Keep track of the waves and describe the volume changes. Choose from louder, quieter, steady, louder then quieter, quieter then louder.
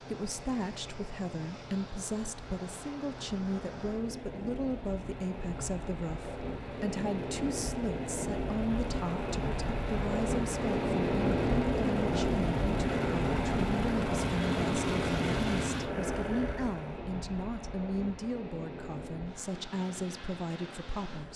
louder then quieter.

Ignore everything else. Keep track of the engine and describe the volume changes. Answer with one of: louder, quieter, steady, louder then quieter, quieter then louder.
louder.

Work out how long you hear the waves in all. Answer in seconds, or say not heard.
21 s.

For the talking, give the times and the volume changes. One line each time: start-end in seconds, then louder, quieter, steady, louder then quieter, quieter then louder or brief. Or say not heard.
0.0-21.3 steady.